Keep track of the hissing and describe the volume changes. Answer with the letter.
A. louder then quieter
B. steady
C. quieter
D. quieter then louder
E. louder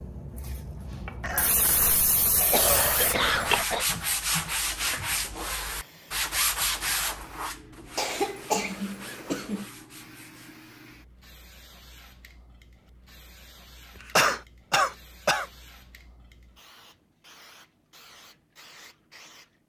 C.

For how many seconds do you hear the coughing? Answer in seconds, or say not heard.
6 s.